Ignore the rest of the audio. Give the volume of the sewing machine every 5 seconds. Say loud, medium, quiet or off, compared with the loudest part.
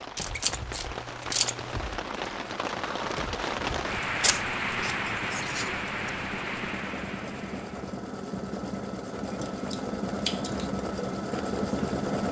quiet, medium, loud.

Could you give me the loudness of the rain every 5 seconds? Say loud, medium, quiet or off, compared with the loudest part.
loud, loud, off.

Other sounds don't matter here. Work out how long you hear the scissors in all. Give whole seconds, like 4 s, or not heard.
5 s.